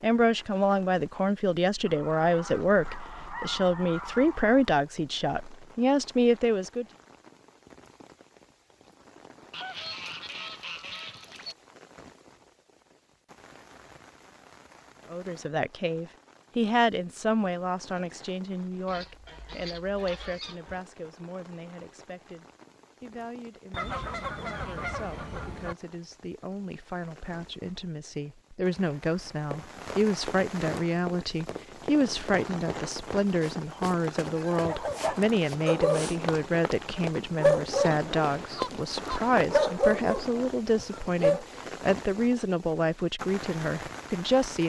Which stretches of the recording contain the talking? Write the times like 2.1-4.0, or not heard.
0.0-6.8, 15.1-44.6.